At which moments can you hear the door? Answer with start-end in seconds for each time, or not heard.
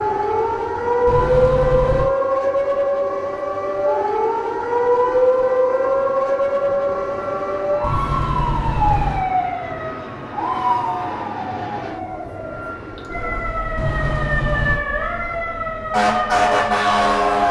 1.1-2.1, 7.8-9.3, 13.8-14.8.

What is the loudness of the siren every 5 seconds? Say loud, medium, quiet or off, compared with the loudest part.
loud, loud, medium, loud.